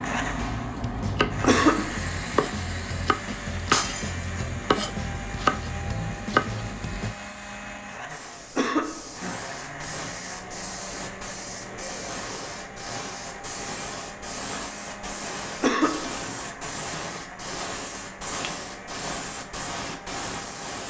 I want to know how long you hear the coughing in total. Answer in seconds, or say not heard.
2 s.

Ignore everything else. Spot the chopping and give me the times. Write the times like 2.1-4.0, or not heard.
0.7-7.2.